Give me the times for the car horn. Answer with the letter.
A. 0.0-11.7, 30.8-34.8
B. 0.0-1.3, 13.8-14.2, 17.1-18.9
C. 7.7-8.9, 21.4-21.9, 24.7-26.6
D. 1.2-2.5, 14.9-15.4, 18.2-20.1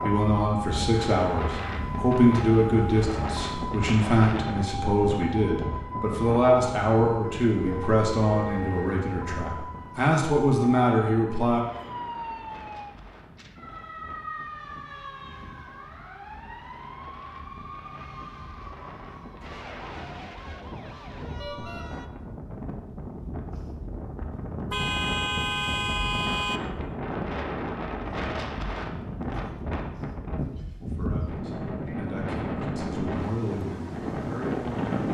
C.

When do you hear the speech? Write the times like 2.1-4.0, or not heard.
0.0-11.7, 30.8-34.8.